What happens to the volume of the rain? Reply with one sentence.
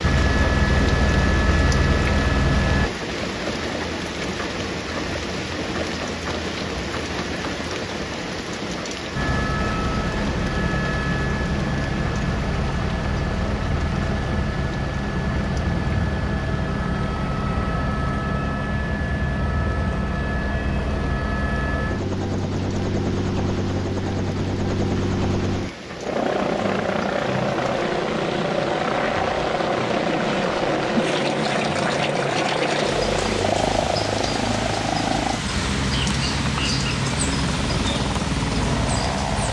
The volume of the rain goes down, then up.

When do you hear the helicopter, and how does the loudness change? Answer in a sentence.
The helicopter can be heard briefly from 0.0 to 2.9 s; and from 9.2 to 39.4 s, at a steady volume.